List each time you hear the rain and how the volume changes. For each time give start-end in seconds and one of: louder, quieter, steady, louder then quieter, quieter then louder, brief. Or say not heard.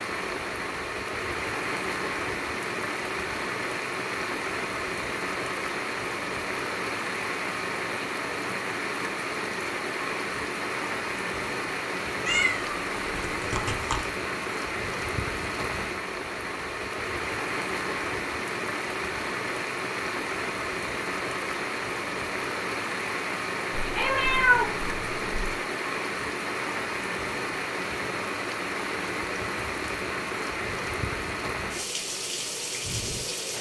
0.0-33.5 steady.